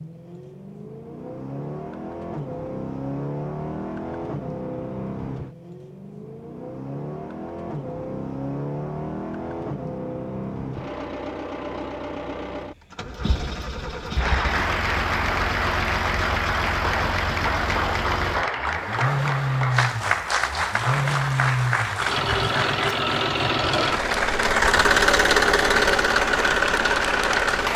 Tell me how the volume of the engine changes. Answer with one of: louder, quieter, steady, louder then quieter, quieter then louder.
louder.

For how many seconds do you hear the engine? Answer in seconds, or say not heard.
28 s.